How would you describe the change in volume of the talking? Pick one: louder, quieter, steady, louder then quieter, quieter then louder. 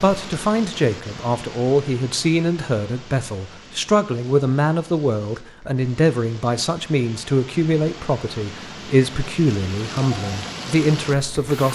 steady.